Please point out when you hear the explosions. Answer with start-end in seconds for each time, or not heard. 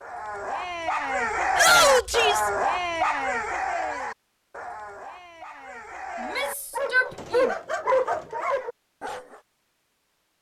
not heard.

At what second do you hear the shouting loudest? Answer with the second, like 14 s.
2 s.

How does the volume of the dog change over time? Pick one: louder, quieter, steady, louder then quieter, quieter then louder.
quieter then louder.